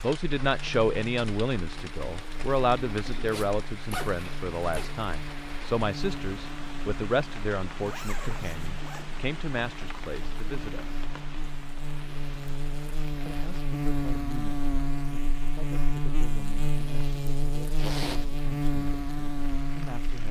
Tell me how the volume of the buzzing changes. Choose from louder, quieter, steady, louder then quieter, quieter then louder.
louder.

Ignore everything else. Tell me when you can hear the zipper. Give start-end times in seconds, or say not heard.
3.2-5.0, 7.8-9.2, 17.8-18.2.